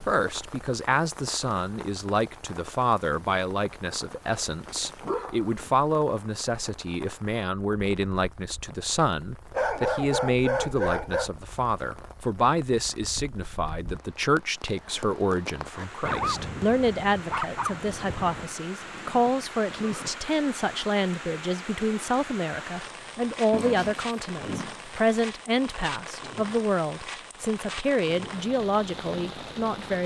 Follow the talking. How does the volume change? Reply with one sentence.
The volume of the talking stays about the same.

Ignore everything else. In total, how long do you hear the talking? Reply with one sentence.
The talking can be heard for 30 seconds in total.